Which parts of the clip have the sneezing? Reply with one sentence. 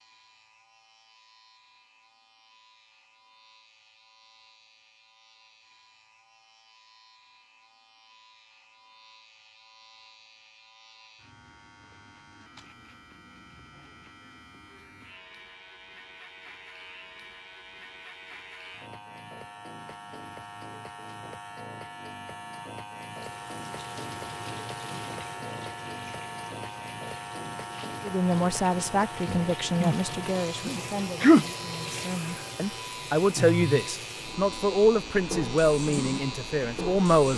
You can hear the sneezing from 29.2 to 31.4 s.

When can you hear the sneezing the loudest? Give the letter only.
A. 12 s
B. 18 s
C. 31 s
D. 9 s
C.